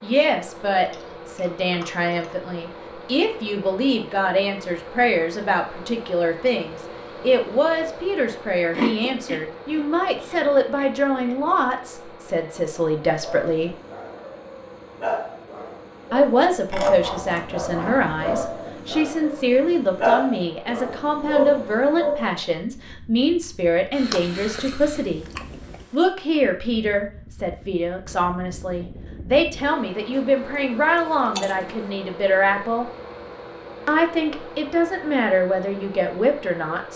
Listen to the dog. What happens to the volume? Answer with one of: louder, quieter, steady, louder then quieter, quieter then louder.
louder.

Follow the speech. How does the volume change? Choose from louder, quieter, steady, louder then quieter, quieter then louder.
steady.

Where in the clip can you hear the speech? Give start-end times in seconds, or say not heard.
0.0-13.8, 16.1-25.2, 25.9-32.9, 33.9-36.9.